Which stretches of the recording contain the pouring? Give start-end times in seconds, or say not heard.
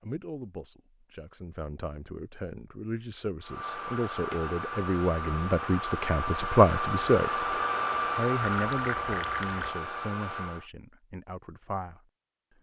8.4-9.7.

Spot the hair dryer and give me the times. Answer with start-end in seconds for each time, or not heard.
3.4-10.7.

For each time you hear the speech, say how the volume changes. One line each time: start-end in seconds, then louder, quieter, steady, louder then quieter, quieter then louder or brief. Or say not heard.
0.0-12.5 louder then quieter.